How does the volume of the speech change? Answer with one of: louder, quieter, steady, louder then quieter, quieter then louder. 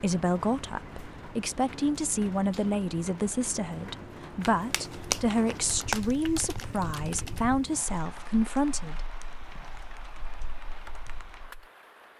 steady.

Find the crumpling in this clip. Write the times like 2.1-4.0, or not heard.
4.4-6.7.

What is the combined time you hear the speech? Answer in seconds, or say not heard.
9 s.